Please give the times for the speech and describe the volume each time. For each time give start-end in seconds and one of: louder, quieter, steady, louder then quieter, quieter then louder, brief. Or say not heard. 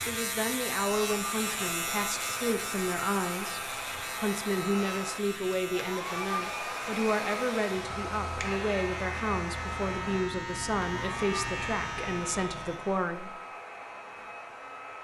0.1-13.3 steady.